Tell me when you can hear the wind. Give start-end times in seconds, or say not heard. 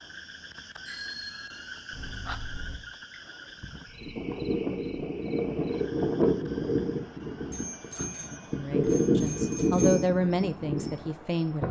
4.0-11.6.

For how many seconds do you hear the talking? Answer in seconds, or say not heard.
3 s.